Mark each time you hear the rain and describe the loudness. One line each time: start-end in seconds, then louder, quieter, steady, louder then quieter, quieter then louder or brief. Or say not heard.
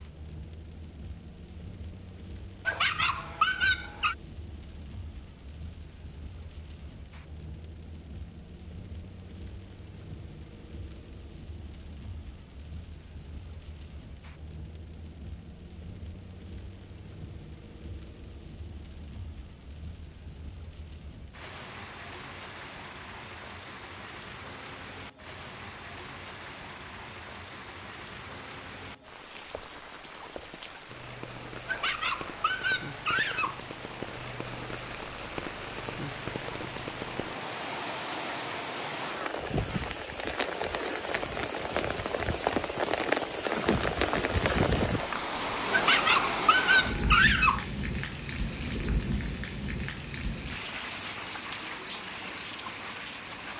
0.0-53.5 louder.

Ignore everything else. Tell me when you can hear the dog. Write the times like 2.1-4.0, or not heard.
2.6-4.2, 31.6-33.6, 45.7-47.6.